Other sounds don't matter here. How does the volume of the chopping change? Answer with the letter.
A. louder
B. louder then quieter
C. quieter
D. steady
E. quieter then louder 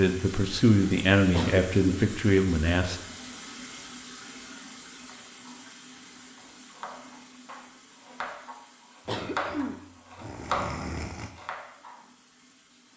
A.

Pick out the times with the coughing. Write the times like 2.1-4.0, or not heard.
1.3-2.1, 9.1-11.3.